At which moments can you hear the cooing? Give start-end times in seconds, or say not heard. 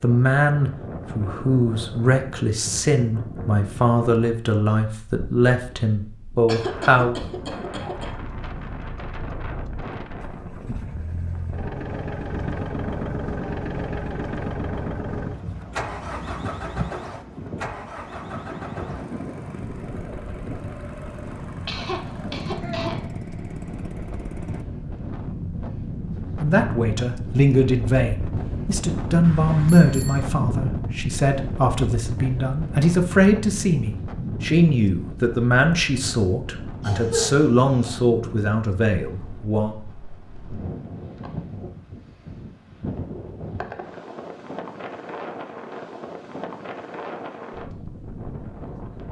not heard.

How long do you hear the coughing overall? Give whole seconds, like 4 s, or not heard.
4 s.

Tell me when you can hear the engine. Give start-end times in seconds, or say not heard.
7.9-24.6.